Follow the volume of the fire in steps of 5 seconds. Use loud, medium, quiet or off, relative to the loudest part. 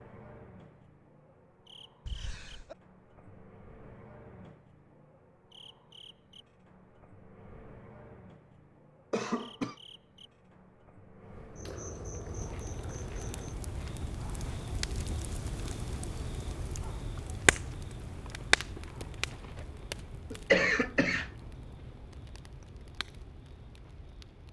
off, off, medium, loud, quiet.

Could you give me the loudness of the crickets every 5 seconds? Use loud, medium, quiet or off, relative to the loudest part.
medium, medium, loud, off, off.